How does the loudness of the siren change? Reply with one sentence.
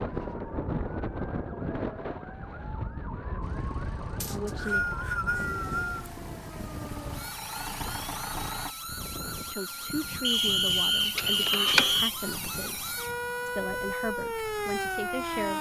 The loudness of the siren goes up.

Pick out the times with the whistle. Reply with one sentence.
The whistle can be heard from 4.2 to 6.1 s and from 10.2 to 12.1 s.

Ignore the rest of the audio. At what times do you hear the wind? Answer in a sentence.
You can hear the wind from 0.0 to 15.5 s.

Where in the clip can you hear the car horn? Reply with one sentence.
The car horn can be heard from 11.2 to 12.0 s.